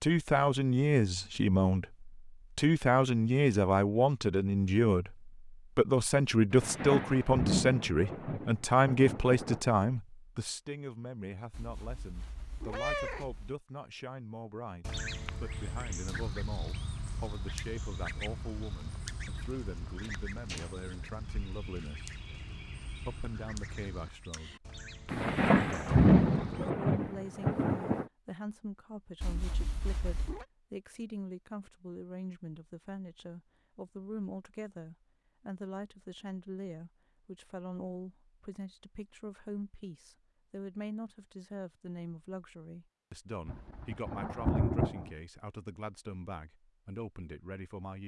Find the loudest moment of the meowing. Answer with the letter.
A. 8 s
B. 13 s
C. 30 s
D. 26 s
B.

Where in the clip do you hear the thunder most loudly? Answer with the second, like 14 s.
26 s.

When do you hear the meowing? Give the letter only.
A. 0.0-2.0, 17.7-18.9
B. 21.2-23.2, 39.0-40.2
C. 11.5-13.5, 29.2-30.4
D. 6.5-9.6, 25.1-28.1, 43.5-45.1
C.